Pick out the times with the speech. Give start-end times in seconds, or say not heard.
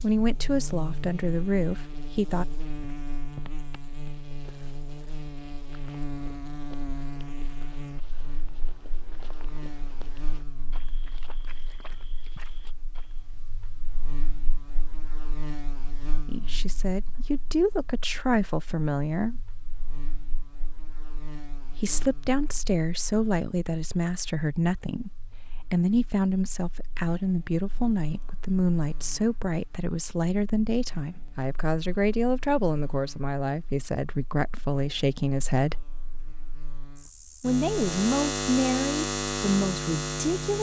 0.0-2.5, 16.2-19.4, 21.7-35.9, 37.4-40.5.